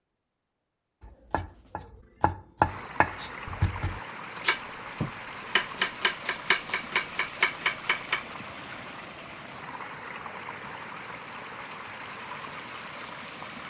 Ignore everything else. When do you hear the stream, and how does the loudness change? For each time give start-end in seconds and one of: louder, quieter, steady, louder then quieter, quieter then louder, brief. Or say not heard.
2.6-13.6 steady.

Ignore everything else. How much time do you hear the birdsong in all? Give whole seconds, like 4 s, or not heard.
not heard.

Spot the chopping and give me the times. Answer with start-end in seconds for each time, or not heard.
1.0-8.2.